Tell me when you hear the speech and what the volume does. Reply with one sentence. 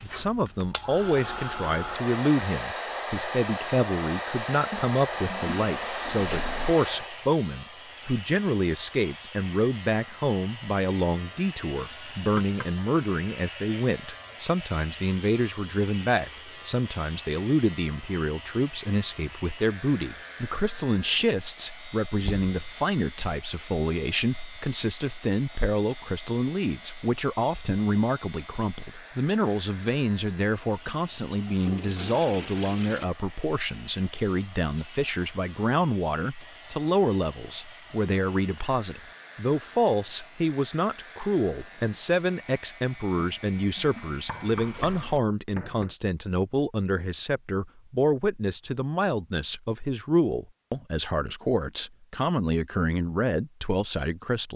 The speech can be heard from 0.0 to 54.5 s, at a steady volume.